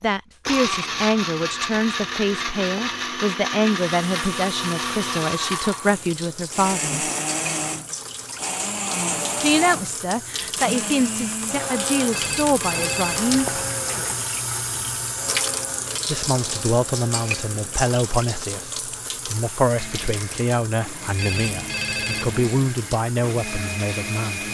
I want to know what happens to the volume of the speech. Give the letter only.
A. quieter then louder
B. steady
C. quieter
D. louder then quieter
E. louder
B.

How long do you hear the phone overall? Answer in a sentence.
You can hear the phone for 5 seconds altogether.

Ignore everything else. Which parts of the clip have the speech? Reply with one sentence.
You can hear the speech from 0.0 to 7.1 s, from 9.4 to 13.5 s and from 16.1 to 24.4 s.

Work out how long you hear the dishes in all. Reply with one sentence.
The dishes can't be heard in this clip.